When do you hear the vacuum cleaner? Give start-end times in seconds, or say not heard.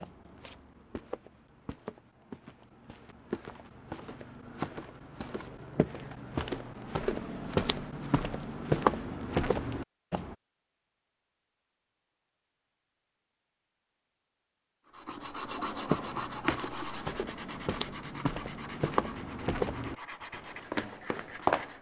not heard.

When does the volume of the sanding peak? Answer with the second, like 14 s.
16 s.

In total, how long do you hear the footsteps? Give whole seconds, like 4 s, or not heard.
16 s.